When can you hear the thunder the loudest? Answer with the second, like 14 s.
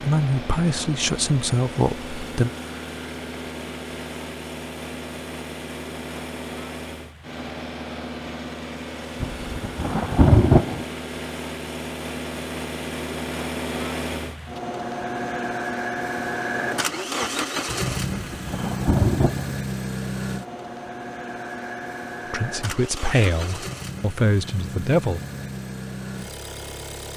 10 s.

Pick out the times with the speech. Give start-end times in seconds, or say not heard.
0.0-2.5, 22.3-25.2.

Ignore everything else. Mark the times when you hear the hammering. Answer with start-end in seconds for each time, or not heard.
not heard.